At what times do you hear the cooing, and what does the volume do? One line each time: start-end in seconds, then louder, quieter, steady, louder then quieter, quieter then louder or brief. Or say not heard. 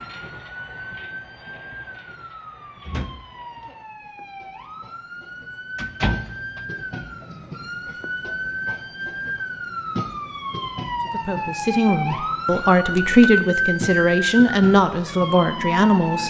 not heard.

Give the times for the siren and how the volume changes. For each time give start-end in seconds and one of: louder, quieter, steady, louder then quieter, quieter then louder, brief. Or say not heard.
0.0-16.2 louder.